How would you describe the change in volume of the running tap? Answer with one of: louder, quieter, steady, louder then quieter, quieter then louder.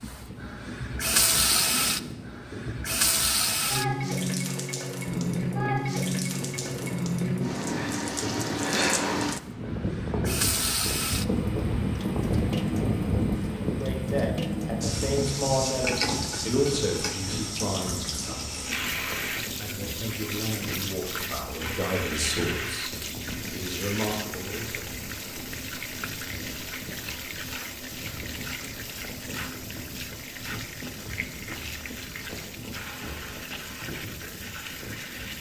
quieter.